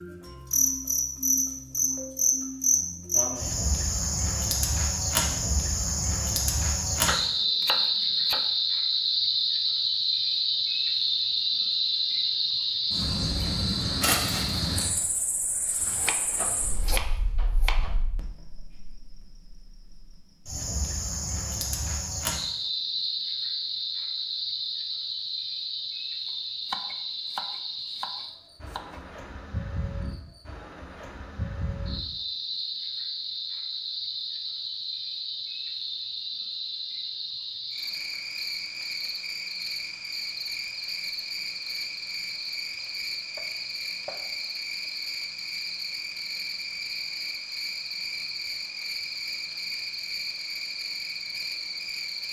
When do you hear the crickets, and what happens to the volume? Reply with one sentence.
The crickets can be heard from 0.0 to 52.2 s, getting quieter.